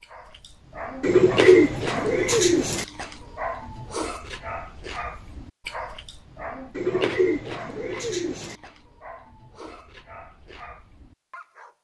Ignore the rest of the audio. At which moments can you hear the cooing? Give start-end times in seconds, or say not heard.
1.0-2.9, 6.8-8.6.